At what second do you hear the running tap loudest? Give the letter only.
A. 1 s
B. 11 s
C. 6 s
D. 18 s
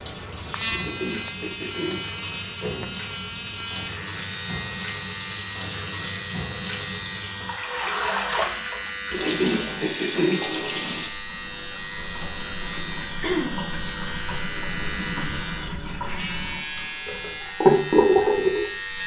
D.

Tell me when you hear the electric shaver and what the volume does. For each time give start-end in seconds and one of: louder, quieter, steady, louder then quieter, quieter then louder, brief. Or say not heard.
0.0-19.0 steady.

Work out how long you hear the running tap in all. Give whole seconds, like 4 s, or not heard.
19 s.